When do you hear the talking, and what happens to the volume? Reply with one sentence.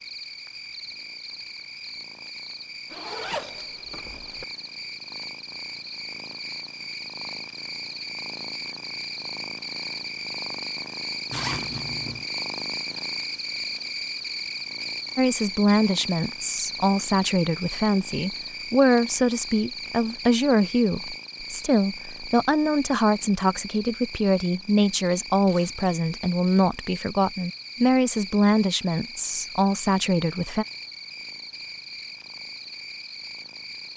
You can hear the talking from 15.2 to 30.6 s, at a steady volume.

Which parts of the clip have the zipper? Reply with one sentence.
You can hear the zipper from 2.9 to 4.5 s, from 11.3 to 12.2 s and from 25.4 to 25.9 s.